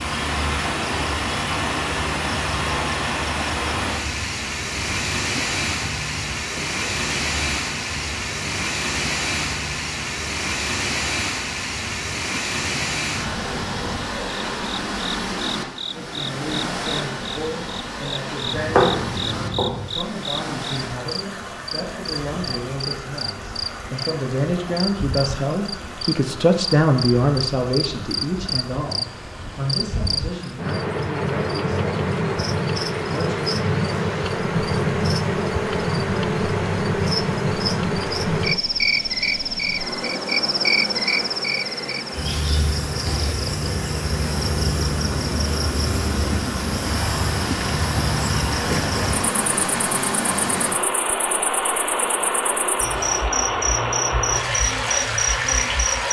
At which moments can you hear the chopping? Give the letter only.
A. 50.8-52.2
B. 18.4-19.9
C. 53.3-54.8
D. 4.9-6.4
B.